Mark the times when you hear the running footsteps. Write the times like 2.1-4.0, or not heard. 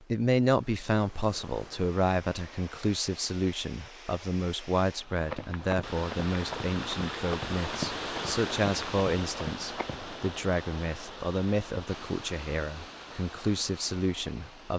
5.2-10.2.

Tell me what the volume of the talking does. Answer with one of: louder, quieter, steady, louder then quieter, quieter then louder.
steady.